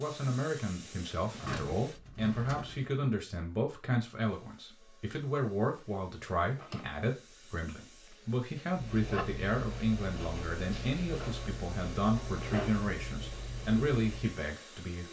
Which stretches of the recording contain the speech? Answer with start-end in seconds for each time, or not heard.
0.0-15.0.